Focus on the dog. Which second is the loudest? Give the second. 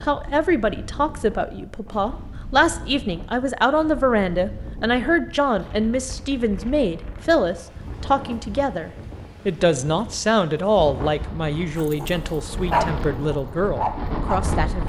13 s.